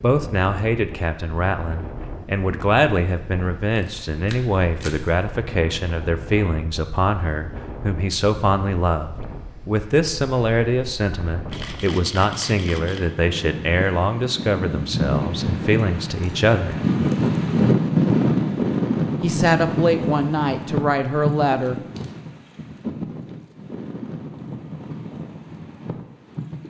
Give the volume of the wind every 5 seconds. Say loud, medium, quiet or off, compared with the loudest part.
quiet, quiet, quiet, loud, medium, quiet.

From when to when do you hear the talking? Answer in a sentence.
The talking can be heard from 0.0 to 16.8 s and from 19.2 to 21.8 s.